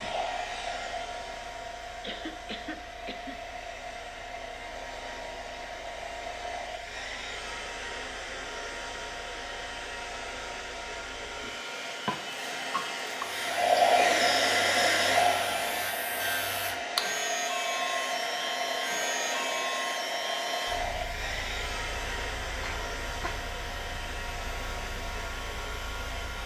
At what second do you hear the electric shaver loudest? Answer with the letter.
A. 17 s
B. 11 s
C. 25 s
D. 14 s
A.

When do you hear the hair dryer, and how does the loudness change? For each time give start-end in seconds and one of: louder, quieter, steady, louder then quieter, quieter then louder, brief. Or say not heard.
0.0-26.4 louder then quieter.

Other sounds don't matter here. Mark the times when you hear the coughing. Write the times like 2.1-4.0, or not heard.
2.0-3.4, 12.1-13.2, 22.6-23.5.